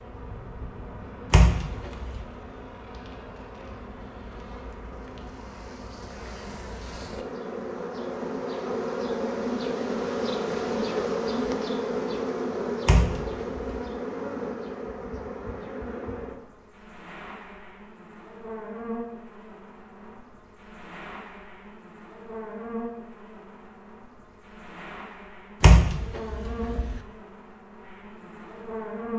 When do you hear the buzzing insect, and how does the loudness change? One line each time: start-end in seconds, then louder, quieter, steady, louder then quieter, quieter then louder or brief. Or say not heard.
0.0-29.1 louder then quieter.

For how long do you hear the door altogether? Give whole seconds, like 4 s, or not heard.
3 s.